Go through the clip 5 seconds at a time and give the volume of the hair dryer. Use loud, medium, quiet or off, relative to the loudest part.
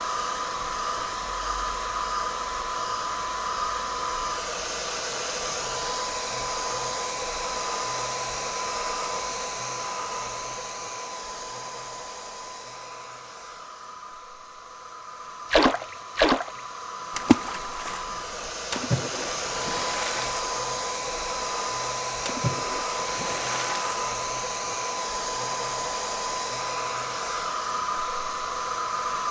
loud, loud, medium, medium, loud, loud.